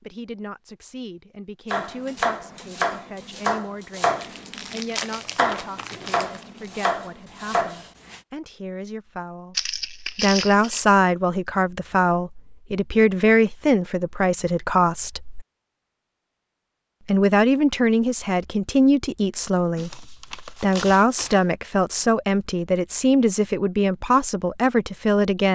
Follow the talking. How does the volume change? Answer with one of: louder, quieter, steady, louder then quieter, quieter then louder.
louder.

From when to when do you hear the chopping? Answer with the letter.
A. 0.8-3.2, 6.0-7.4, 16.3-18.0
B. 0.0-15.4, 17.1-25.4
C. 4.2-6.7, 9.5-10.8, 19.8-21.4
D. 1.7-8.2
D.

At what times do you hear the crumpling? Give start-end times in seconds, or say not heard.
4.2-6.7, 9.5-10.8, 19.8-21.4.